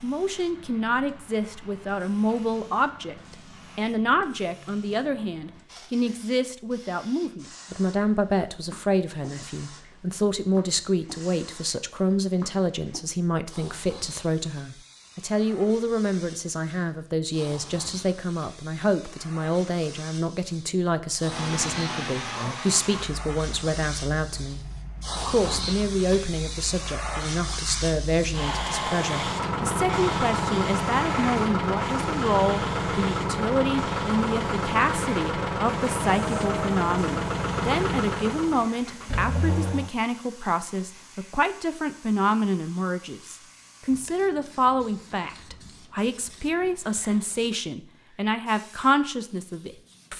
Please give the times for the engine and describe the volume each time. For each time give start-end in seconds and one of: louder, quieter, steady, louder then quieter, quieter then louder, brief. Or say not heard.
21.2-39.9 quieter then louder.